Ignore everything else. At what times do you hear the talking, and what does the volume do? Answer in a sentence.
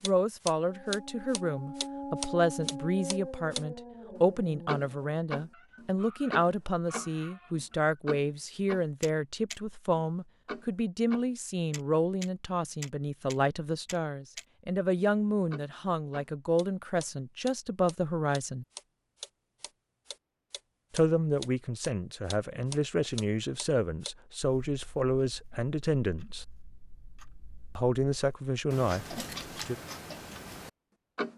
You can hear the talking from 0.0 to 18.6 s, at a steady volume; from 20.9 to 26.4 s, at a steady volume; and briefly from 27.8 to 29.8 s.